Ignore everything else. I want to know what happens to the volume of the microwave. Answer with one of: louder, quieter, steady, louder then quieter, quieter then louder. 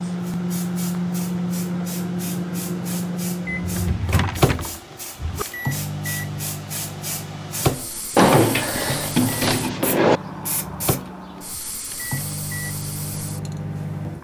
quieter.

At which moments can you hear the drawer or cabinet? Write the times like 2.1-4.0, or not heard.
3.5-5.5, 8.2-10.2.